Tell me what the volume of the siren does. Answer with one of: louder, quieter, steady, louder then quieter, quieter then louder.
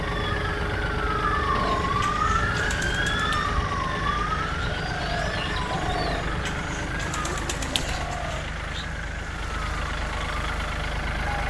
quieter.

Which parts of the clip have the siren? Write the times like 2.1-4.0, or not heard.
0.0-11.4.